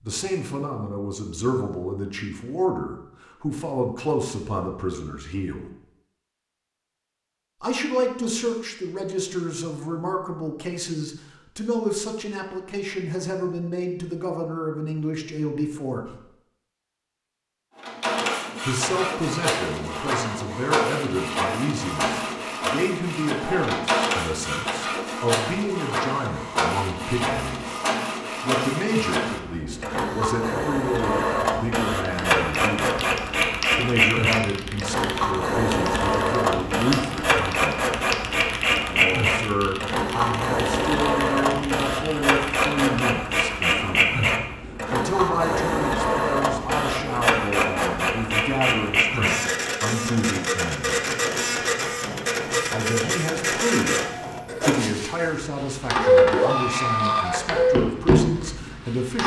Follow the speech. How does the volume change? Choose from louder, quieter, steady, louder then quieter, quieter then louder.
steady.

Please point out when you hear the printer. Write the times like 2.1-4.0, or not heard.
17.8-59.2.